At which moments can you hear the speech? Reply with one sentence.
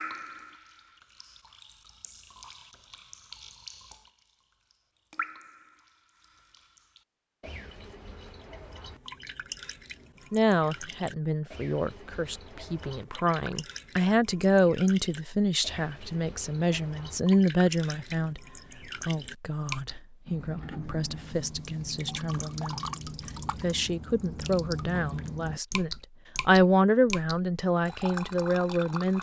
The speech can be heard from 10.3 to 18.4 s, from 19.1 to 22.8 s and from 23.5 to 29.1 s.